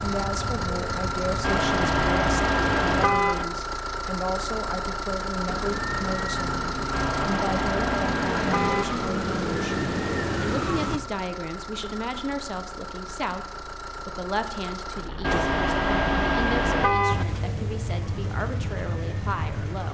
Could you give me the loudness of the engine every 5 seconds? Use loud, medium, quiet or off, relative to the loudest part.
loud, loud, medium, medium.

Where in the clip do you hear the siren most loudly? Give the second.
10 s.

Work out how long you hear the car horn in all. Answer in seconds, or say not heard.
6 s.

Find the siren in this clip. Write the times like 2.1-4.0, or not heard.
0.0-3.2, 5.5-11.0, 17.1-19.8.